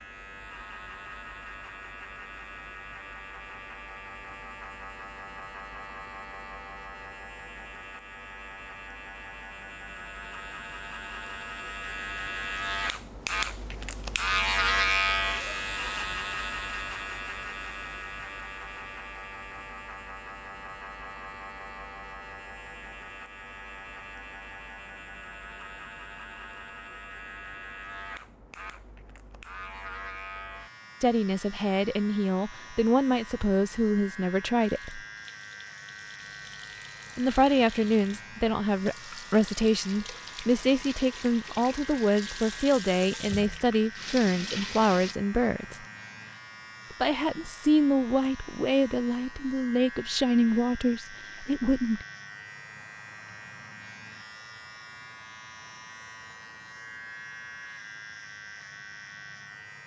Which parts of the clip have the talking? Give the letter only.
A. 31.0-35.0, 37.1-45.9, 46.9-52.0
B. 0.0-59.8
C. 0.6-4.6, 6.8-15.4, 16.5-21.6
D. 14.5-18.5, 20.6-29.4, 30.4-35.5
A.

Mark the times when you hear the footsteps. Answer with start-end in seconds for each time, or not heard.
not heard.